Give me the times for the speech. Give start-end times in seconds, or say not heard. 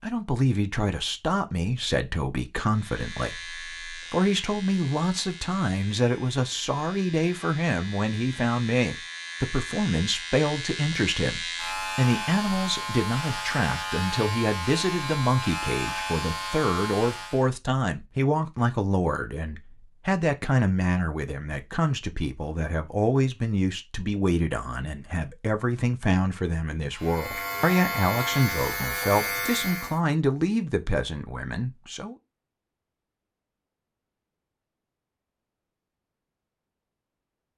0.0-32.1.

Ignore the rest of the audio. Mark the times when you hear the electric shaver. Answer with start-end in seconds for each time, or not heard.
2.7-17.5, 26.9-30.0.